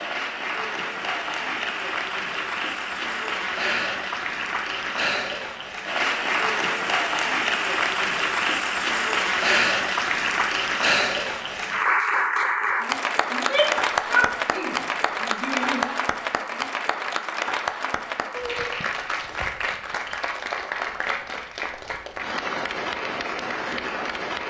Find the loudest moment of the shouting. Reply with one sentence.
The volume of the shouting peaks at 14 seconds.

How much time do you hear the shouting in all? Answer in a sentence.
You can hear the shouting for 3 seconds altogether.